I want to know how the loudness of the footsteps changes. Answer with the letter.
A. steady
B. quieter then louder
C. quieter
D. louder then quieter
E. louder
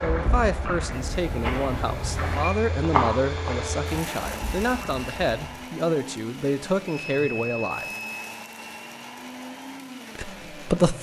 D.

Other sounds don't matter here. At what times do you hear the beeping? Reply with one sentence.
The beeping can be heard from 0.9 to 2.5 s and from 6.8 to 8.3 s.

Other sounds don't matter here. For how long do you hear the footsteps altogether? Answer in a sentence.
The footsteps can be heard for 6 seconds in total.